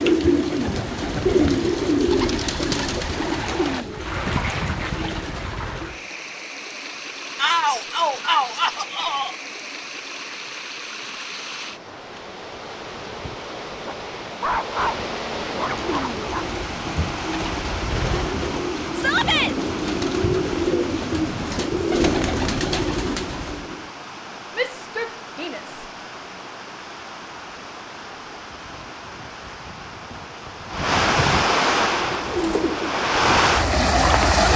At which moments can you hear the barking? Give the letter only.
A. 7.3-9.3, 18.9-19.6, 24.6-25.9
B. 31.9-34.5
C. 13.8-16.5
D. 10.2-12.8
C.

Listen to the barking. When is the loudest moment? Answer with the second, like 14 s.
15 s.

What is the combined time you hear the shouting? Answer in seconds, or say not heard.
4 s.